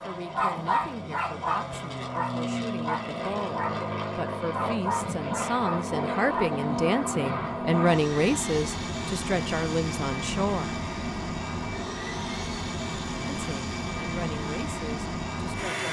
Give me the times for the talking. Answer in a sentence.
You can hear the talking from 0.1 to 10.8 s and from 13.3 to 15.8 s.